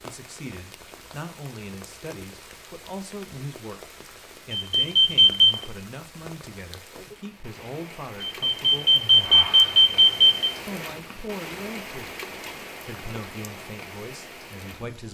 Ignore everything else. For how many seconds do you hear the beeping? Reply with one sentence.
The beeping can be heard for 3 seconds in total.